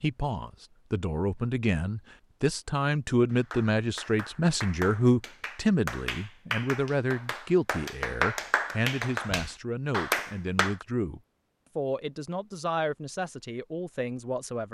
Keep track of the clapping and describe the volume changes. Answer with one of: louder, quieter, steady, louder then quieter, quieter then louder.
louder.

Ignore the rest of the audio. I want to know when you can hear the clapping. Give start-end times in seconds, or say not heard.
3.3-10.8.